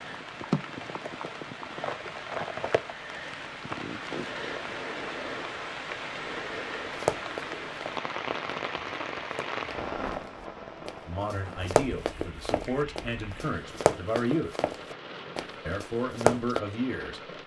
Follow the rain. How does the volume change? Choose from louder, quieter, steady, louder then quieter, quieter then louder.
quieter.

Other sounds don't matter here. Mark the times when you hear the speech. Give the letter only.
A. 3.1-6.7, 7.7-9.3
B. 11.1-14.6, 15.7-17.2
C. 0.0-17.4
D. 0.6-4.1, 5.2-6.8
B.